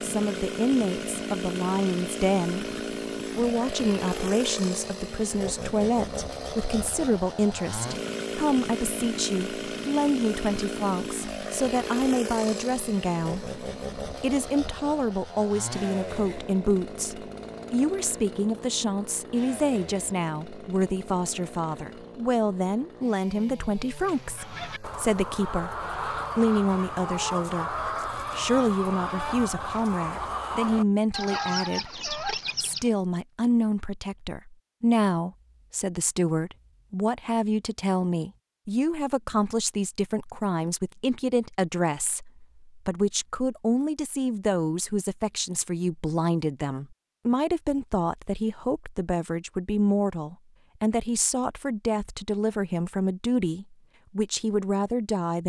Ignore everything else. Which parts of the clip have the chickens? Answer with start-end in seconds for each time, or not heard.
24.0-32.9.